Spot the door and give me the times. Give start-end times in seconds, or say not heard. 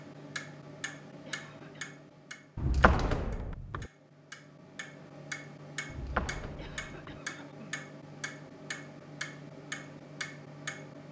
2.5-3.9, 5.9-7.2.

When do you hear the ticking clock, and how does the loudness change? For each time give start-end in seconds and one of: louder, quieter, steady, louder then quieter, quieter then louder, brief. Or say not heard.
0.0-11.0 quieter then louder.